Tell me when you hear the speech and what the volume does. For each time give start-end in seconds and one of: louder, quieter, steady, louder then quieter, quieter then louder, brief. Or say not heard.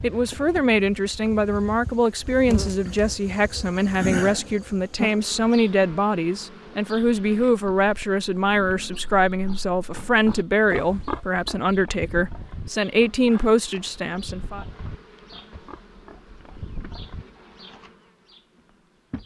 0.0-14.7 steady.